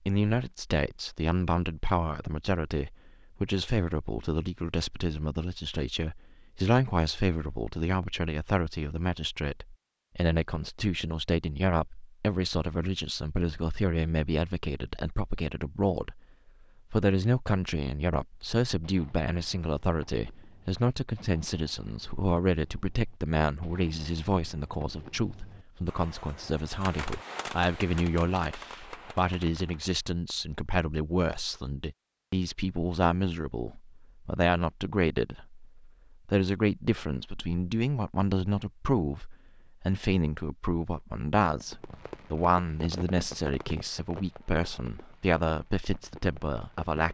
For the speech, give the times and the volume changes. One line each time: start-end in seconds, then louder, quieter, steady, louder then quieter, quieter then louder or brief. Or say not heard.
0.1-16.2 steady
16.9-47.0 steady.